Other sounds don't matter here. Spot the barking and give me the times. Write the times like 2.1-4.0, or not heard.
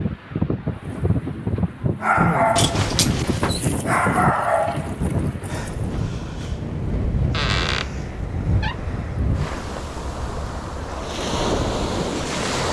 0.7-5.7.